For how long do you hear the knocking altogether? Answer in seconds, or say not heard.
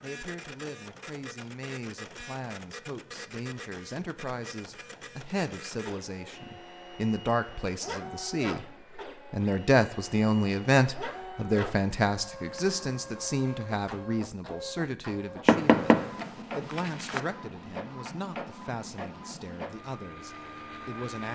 2 s.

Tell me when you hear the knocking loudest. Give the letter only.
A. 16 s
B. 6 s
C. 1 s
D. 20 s
A.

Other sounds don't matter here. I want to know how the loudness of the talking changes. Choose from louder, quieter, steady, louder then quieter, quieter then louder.
louder then quieter.